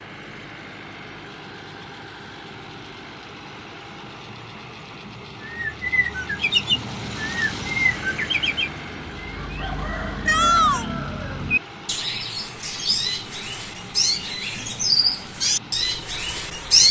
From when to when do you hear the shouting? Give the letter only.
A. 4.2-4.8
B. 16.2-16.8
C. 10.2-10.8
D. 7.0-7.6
C.